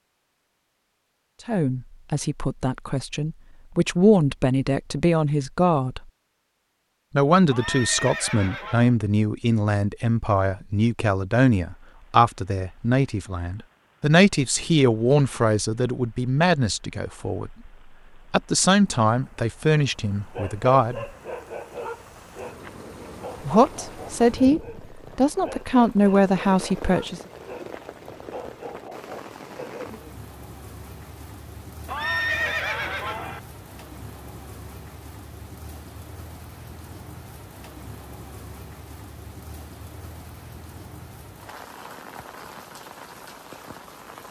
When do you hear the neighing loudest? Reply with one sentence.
The volume of the neighing peaks at 32 seconds.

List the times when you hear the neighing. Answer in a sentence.
You can hear the neighing from 7.5 to 8.9 s and from 31.9 to 33.4 s.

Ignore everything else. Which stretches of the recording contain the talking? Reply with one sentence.
You can hear the talking from 1.4 to 6.0 s, from 7.2 to 17.7 s, from 18.3 to 21.1 s and from 23.4 to 27.2 s.